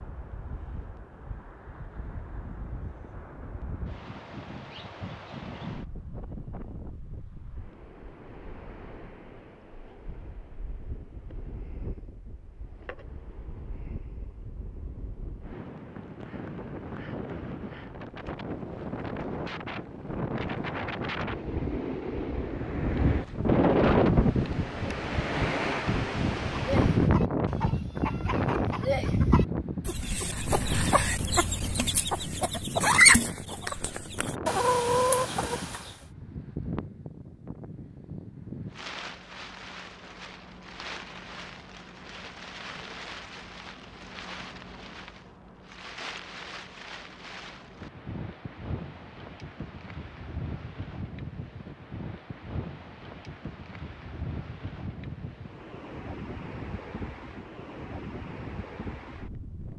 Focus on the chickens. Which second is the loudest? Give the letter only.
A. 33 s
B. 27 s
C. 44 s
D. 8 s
A.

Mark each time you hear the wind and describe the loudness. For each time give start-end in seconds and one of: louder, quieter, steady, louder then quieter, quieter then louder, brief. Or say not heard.
0.0-59.7 louder then quieter.